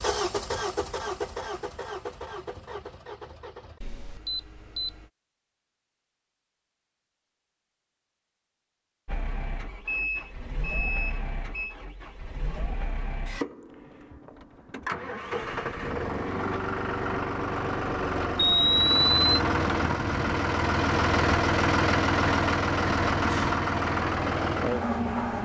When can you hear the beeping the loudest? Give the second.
19 s.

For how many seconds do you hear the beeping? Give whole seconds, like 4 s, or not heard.
4 s.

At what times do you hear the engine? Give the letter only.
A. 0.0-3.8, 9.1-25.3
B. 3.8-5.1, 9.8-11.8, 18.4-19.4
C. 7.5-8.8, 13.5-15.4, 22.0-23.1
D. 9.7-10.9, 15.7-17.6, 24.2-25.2
A.